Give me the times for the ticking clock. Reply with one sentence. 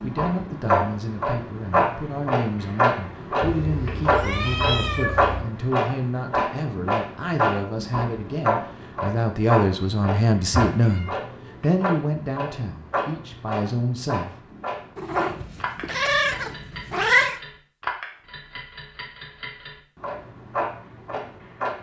The ticking clock can be heard from 0.0 to 21.7 s.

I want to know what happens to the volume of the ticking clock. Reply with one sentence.
The loudness of the ticking clock goes down.